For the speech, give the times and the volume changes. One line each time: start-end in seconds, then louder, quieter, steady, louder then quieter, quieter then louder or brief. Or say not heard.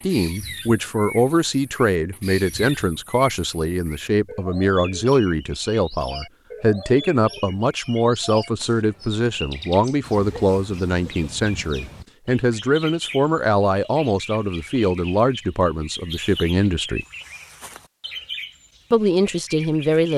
0.0-17.1 steady
18.9-20.1 brief.